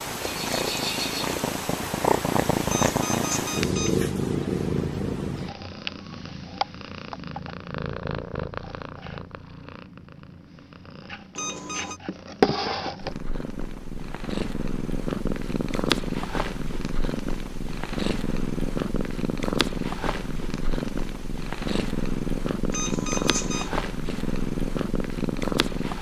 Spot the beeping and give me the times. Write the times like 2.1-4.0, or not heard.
2.6-4.0, 11.3-12.0, 22.7-23.7.